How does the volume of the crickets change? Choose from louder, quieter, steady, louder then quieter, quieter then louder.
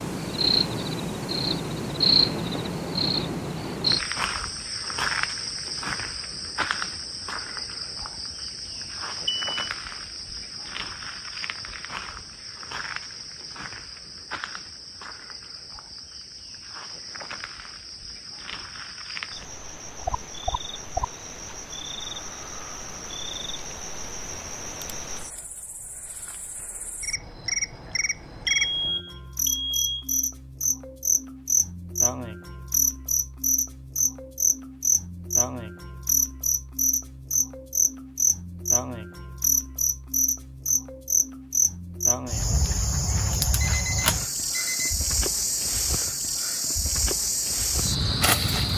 quieter then louder.